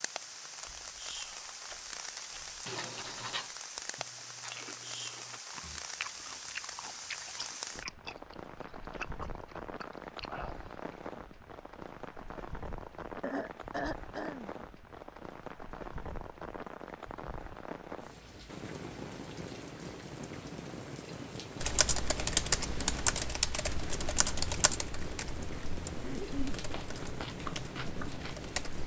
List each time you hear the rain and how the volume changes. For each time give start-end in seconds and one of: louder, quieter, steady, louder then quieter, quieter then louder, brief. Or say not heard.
0.0-28.8 steady.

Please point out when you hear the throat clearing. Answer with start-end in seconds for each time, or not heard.
2.6-3.5, 13.2-14.5, 26.0-26.6.